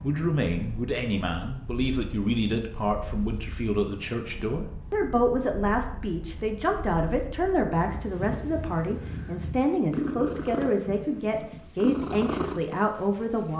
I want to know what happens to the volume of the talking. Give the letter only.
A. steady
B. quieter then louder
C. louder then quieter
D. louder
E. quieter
A.